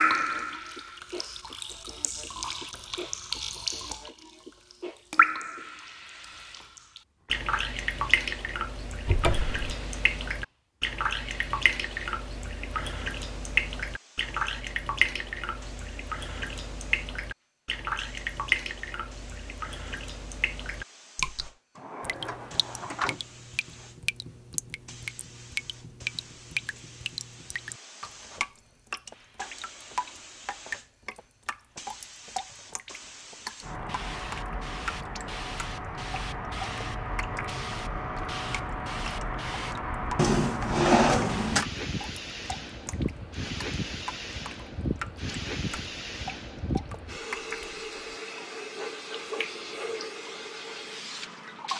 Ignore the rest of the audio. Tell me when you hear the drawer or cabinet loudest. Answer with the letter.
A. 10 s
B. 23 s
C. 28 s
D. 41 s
D.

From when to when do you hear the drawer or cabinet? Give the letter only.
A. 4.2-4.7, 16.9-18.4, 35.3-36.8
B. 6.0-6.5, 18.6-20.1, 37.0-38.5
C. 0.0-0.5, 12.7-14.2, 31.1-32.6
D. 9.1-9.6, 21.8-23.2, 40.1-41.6
D.